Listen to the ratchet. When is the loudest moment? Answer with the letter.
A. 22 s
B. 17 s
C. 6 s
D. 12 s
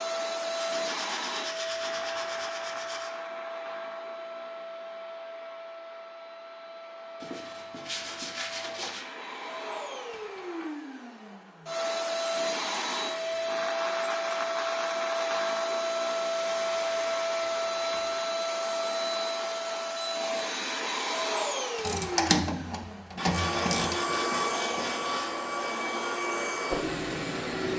A.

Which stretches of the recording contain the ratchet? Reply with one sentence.
The ratchet can be heard from 21.8 to 23.9 s.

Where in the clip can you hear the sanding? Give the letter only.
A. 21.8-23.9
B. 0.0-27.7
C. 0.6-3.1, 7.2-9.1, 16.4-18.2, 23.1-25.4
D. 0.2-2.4
C.